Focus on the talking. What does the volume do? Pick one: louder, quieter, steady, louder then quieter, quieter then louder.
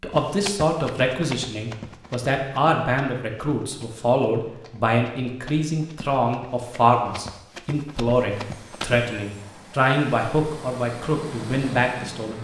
steady.